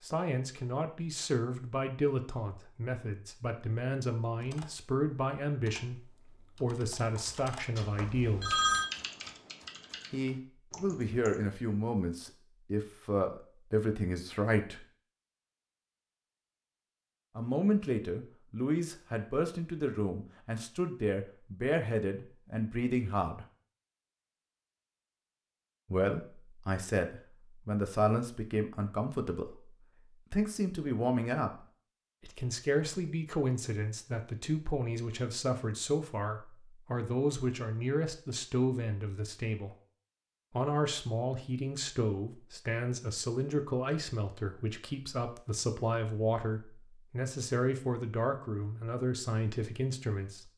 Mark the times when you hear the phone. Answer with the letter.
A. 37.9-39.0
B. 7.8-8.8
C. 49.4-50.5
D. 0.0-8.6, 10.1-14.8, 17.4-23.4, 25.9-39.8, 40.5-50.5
B.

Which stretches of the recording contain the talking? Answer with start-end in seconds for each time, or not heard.
0.0-8.6, 10.1-14.8, 17.4-23.4, 25.9-39.8, 40.5-50.5.